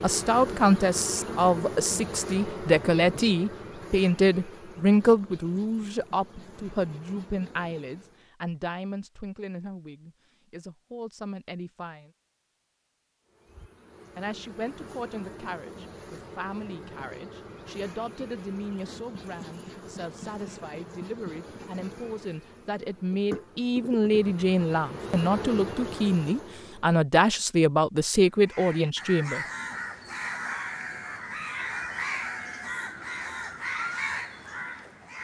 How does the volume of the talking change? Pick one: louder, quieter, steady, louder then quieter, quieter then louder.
quieter then louder.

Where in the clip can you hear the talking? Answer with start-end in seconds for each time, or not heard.
0.0-12.1, 14.2-29.4.